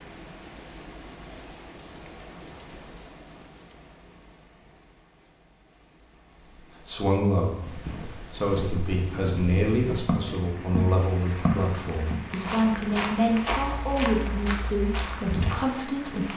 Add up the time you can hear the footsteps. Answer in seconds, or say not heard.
9 s.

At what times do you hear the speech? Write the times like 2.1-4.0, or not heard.
6.5-16.3.